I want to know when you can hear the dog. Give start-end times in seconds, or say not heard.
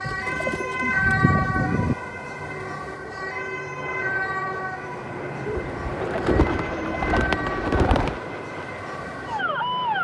not heard.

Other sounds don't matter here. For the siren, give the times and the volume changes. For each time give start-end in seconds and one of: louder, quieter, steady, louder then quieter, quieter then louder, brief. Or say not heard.
0.0-10.0 quieter.